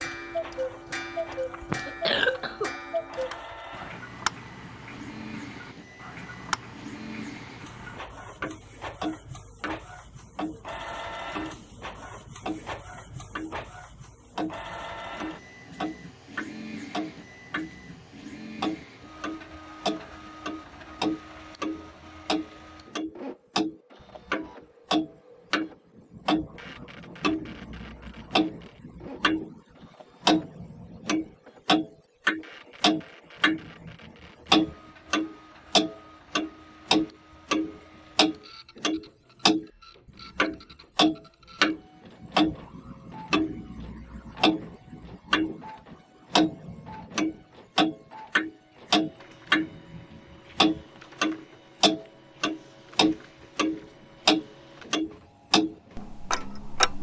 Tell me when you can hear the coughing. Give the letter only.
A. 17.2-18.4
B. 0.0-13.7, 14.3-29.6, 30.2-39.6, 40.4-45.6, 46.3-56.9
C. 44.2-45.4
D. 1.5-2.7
D.